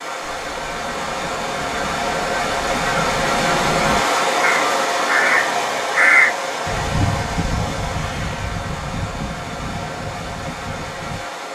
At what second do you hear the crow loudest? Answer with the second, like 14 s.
6 s.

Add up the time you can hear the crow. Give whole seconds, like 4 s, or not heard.
11 s.